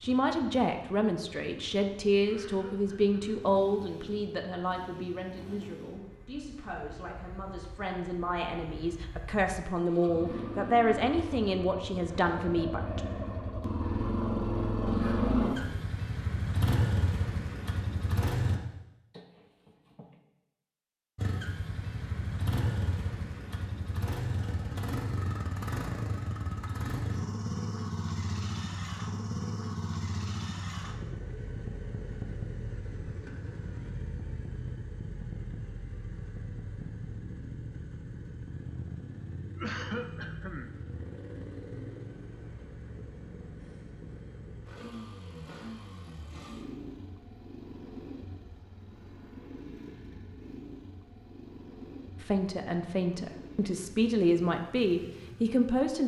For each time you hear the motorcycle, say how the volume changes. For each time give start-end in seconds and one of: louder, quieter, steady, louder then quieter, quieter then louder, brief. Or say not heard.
0.0-18.6 louder
21.1-56.0 quieter.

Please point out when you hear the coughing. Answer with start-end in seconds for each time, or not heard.
2.2-3.5, 19.1-20.2, 39.5-40.7.